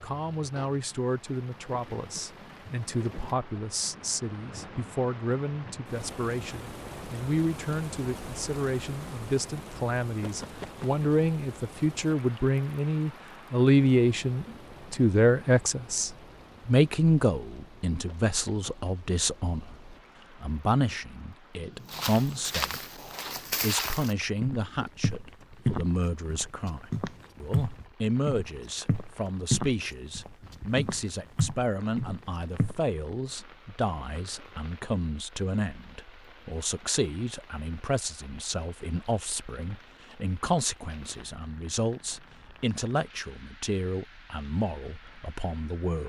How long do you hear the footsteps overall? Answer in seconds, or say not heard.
11 s.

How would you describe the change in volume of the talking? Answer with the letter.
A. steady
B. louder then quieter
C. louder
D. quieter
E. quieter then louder
B.